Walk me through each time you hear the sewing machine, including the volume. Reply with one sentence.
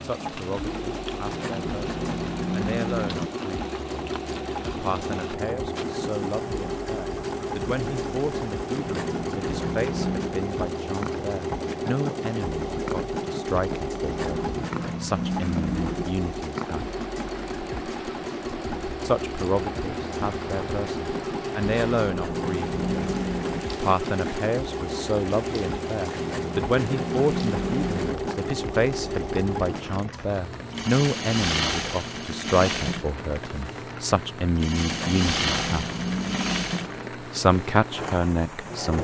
The sewing machine can be heard from 0.0 to 39.0 s, at a steady volume.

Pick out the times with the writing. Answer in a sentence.
You can hear the writing from 1.2 to 3.3 s, from 8.8 to 10.3 s, from 14.0 to 16.1 s, from 21.6 to 23.6 s, from 26.1 to 28.1 s and from 34.9 to 36.7 s.